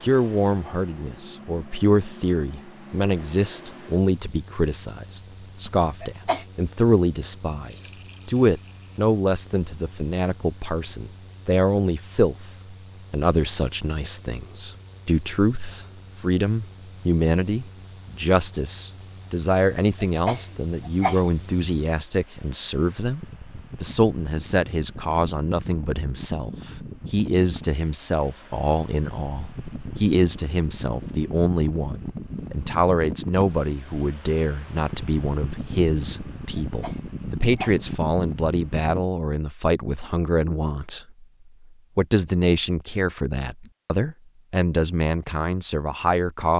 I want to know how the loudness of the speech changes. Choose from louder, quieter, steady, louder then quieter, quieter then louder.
steady.